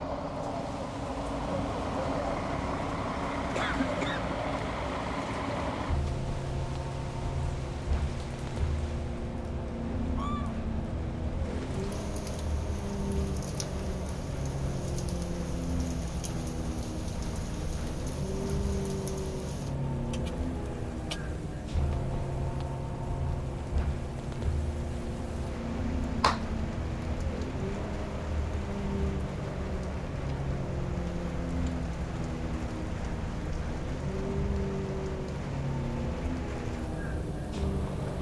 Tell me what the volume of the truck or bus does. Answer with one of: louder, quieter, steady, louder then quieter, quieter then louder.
steady.